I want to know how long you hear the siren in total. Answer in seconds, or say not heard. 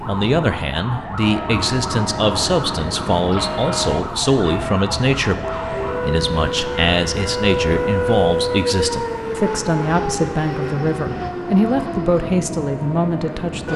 14 s.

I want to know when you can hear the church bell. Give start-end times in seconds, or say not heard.
1.2-8.7.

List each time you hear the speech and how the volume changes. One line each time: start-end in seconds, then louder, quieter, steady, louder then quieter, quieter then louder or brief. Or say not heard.
0.1-13.7 steady.